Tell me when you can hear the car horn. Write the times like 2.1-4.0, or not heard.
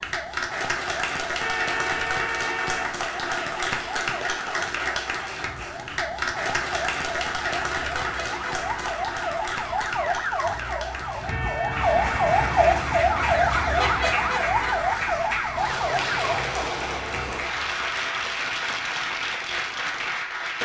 1.4-2.9, 11.2-12.6.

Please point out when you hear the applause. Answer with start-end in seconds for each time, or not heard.
0.0-20.6.